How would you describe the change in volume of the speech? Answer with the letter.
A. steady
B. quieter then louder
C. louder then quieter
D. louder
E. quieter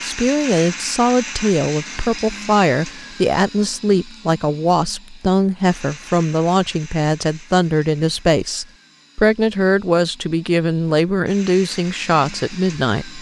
A.